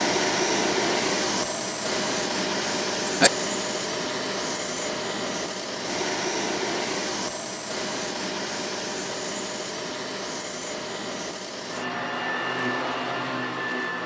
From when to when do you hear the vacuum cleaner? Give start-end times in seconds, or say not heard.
0.0-14.0.